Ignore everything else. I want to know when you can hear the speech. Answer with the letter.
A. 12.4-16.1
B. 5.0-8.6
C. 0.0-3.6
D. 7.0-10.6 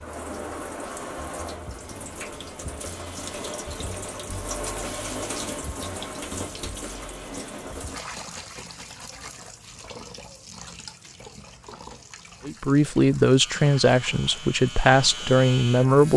A.